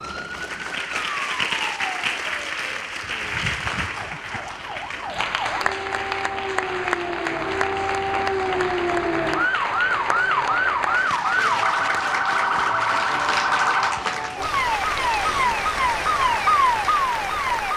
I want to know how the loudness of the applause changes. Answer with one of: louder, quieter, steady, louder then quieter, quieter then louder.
steady.